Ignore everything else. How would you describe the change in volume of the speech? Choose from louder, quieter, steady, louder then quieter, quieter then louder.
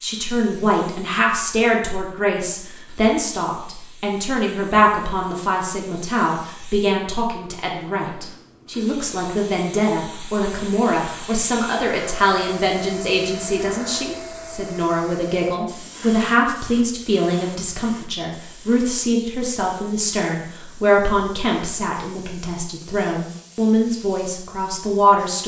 steady.